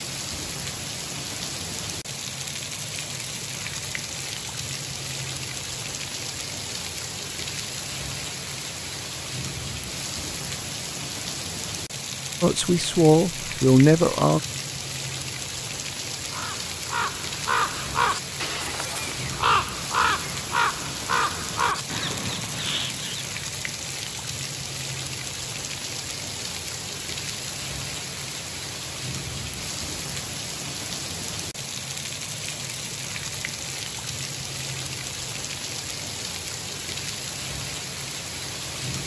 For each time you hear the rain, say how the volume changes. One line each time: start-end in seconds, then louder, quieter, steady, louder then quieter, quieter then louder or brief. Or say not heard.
0.0-39.0 steady.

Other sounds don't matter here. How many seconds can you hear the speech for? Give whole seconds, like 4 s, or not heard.
2 s.